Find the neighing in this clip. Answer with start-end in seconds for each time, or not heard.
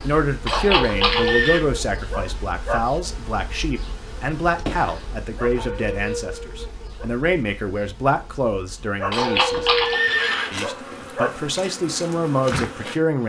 0.5-1.6, 9.1-10.5.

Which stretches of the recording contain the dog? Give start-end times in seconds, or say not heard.
0.5-2.9, 5.3-7.1, 9.0-11.3.